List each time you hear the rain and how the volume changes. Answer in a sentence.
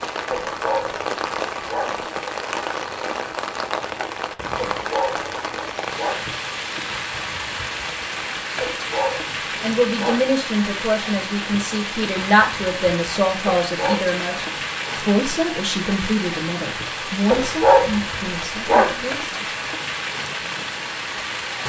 You can hear the rain from 0.0 to 21.6 s, at a steady volume.